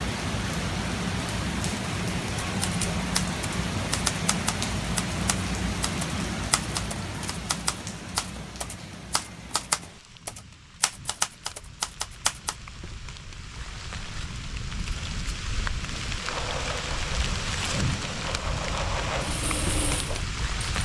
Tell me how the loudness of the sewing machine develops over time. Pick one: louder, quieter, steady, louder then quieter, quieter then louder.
quieter then louder.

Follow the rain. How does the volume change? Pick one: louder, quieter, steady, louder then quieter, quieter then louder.
quieter then louder.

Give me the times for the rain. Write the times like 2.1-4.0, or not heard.
0.0-20.7.